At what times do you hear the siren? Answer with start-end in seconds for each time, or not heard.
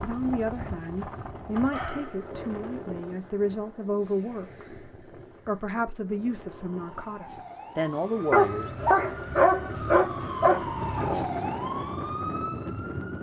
6.5-13.1.